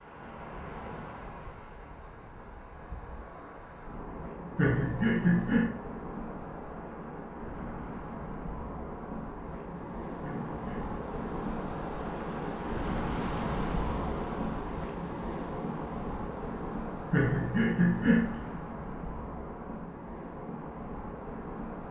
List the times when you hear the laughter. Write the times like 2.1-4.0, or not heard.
4.5-5.7, 10.2-10.9, 17.1-18.6.